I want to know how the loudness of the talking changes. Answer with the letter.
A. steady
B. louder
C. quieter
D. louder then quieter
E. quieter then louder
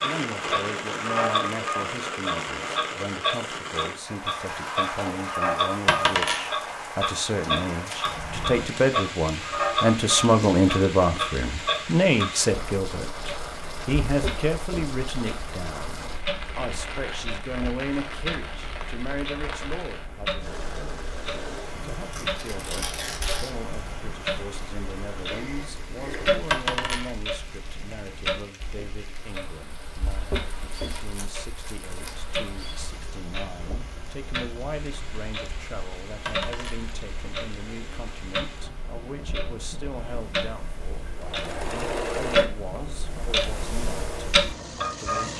D.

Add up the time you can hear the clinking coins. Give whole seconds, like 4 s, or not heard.
2 s.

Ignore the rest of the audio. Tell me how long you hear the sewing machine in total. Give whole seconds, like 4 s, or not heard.
4 s.